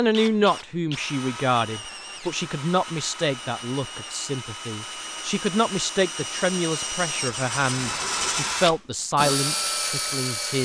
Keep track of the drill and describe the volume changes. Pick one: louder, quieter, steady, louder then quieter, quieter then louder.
louder.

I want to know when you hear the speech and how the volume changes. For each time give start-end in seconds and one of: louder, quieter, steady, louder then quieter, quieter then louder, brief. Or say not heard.
0.0-10.6 steady.